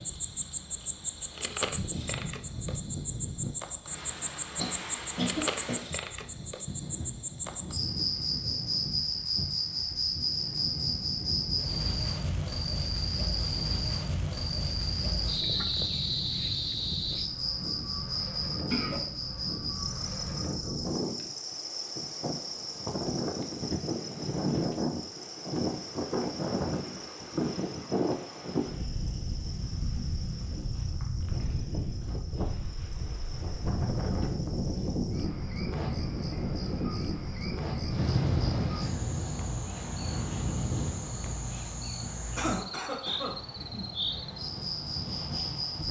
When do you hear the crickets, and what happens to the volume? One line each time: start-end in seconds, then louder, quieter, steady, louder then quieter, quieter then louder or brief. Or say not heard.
0.0-45.8 quieter then louder.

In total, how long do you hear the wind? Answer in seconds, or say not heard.
46 s.